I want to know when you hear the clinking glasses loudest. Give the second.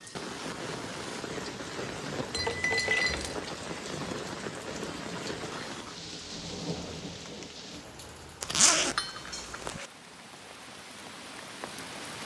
3 s.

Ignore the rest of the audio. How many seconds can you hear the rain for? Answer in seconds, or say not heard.
12 s.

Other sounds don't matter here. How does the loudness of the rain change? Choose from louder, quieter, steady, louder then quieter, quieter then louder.
quieter.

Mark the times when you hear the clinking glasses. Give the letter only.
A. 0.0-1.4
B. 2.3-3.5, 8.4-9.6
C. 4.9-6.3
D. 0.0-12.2
B.